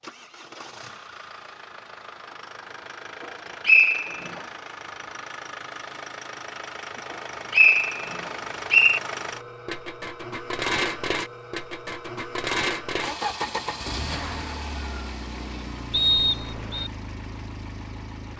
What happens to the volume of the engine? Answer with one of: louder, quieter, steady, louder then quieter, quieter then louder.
louder then quieter.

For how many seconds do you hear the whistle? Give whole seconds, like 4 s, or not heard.
3 s.